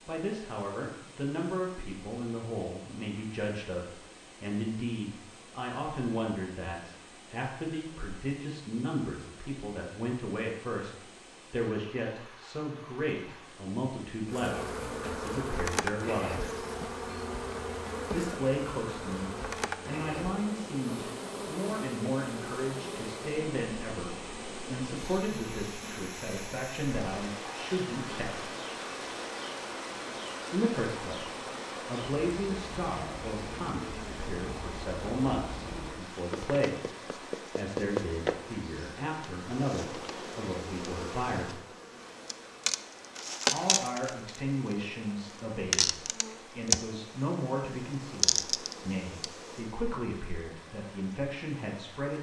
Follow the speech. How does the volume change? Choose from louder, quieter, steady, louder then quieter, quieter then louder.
steady.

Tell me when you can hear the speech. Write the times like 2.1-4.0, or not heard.
0.1-16.5, 18.1-28.4, 30.5-41.6, 43.5-52.1.